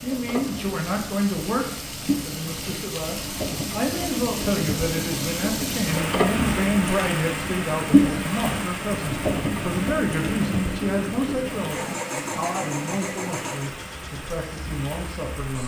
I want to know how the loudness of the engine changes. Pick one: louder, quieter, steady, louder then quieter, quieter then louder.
louder then quieter.